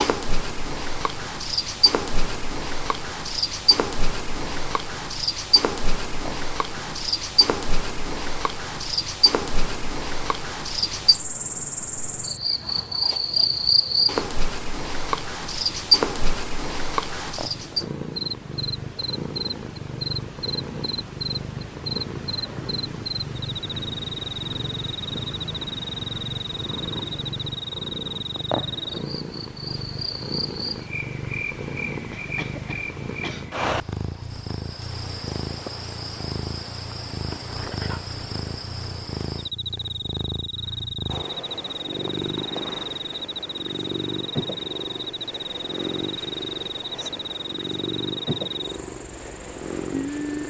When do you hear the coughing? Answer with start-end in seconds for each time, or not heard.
32.1-33.5.